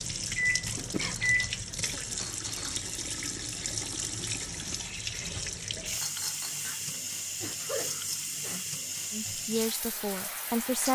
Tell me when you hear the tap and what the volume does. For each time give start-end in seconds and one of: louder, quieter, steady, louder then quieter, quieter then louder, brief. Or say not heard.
0.0-10.9 steady.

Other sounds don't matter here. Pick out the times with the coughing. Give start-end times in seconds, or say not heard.
0.7-1.2, 6.6-8.7.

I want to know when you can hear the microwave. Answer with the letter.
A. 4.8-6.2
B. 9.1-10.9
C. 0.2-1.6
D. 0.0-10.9
C.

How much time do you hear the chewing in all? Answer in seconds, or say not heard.
not heard.